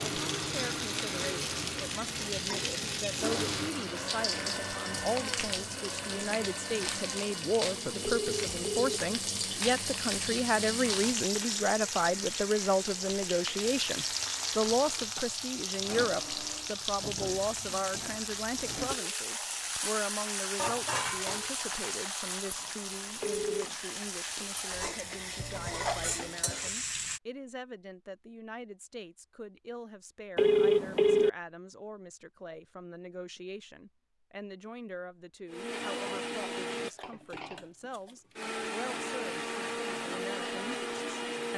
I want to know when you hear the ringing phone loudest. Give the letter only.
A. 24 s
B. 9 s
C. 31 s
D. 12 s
C.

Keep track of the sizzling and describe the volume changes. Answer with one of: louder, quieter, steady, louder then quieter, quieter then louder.
steady.